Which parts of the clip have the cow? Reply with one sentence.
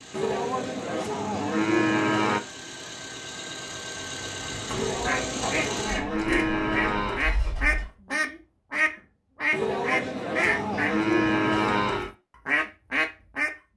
You can hear the cow from 0.1 to 2.4 s, from 4.7 to 7.2 s and from 9.5 to 12.1 s.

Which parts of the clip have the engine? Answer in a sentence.
The engine can be heard from 0.0 to 7.9 s.